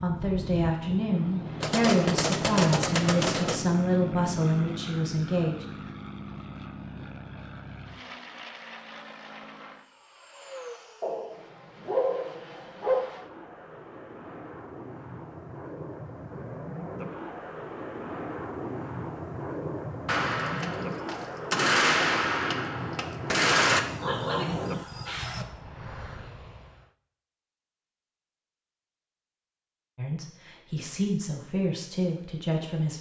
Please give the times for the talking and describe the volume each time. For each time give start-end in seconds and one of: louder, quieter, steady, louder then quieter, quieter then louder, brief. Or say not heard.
0.0-5.7 steady
29.9-32.9 brief.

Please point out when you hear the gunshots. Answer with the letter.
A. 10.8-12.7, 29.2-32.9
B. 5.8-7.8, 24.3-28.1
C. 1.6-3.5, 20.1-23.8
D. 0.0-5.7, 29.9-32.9
C.